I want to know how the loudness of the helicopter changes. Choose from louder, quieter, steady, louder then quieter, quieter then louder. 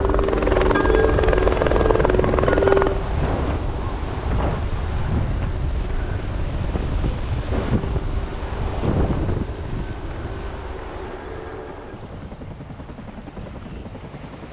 quieter.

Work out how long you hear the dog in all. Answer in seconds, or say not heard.
not heard.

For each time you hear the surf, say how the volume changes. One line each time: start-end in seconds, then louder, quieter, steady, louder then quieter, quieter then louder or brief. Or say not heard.
0.0-14.4 quieter.